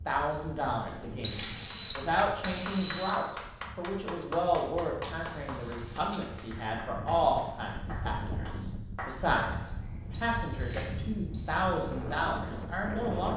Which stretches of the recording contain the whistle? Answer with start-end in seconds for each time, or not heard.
1.2-3.2, 10.1-11.6.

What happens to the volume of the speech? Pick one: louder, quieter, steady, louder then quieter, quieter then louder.
steady.